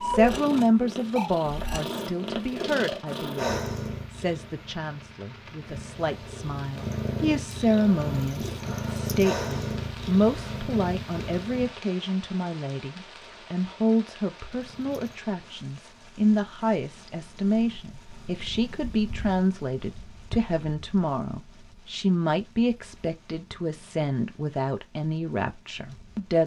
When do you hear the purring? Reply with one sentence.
You can hear the purring from 0.0 to 11.8 s and from 14.3 to 26.4 s.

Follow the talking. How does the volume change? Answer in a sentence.
The loudness of the talking stays about the same.